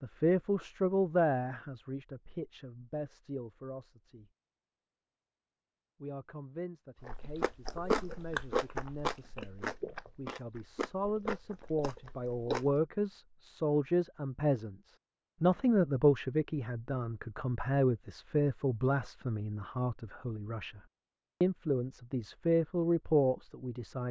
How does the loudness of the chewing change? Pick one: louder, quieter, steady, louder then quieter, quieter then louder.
quieter.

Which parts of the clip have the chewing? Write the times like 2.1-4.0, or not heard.
7.0-12.8.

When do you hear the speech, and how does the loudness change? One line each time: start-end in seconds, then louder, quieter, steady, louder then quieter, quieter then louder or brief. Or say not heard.
0.0-4.2 quieter
6.0-20.8 louder
21.4-24.0 brief.